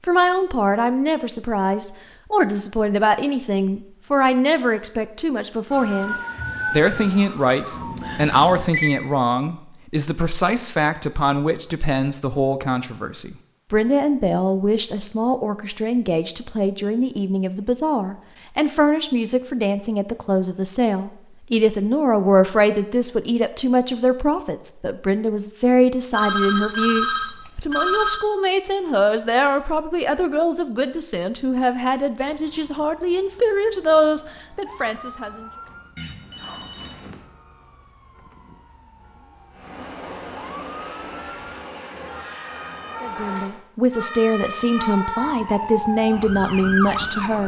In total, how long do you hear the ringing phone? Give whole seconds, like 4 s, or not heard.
5 s.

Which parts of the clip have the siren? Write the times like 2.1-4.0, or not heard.
5.7-8.7, 32.2-47.4.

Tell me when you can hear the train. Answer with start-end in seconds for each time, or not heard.
39.5-43.6.